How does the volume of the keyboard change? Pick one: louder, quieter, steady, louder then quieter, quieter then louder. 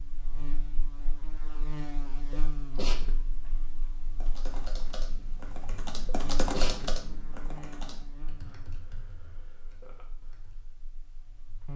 louder then quieter.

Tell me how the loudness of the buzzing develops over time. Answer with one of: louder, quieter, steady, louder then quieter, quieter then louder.
quieter.